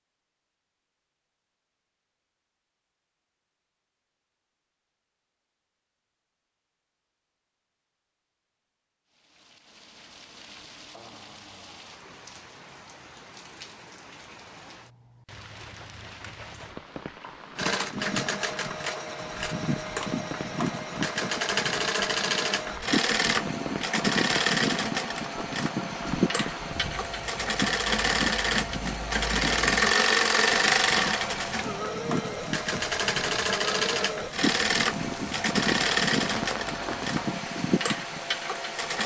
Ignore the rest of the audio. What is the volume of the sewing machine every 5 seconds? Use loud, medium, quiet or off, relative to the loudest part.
off, off, off, medium, loud, loud, loud, loud.